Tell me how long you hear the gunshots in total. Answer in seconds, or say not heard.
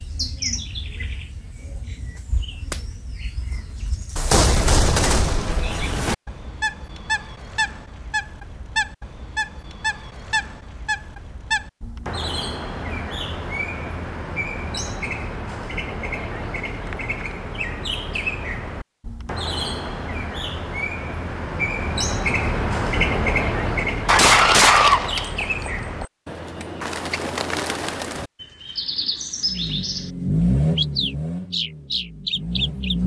4 s.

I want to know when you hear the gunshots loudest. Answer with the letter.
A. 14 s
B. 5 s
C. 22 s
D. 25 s
D.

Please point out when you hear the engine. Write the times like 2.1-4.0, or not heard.
29.4-33.0.